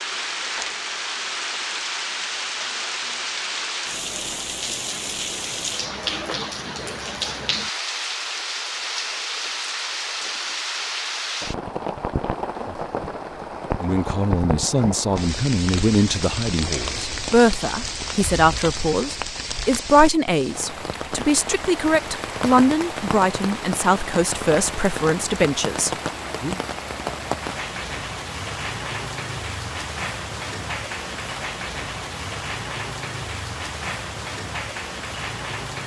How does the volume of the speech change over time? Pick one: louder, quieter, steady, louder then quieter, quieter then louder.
steady.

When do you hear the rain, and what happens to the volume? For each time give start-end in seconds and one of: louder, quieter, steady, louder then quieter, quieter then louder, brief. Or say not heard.
0.0-35.8 steady.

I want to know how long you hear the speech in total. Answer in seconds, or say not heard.
13 s.